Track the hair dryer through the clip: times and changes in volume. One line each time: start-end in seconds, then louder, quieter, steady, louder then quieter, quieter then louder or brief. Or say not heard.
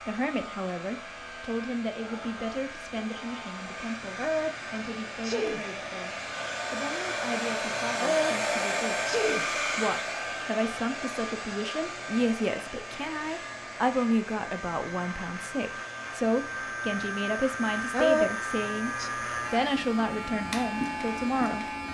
0.0-21.6 louder then quieter.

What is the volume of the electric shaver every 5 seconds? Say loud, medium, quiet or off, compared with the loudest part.
medium, medium, medium, loud, loud.